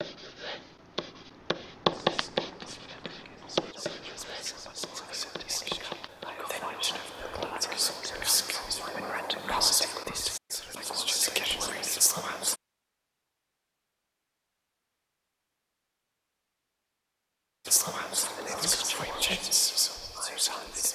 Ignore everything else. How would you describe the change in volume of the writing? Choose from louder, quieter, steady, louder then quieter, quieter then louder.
quieter.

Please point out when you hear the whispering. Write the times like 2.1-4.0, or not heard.
1.9-12.6, 17.6-20.8.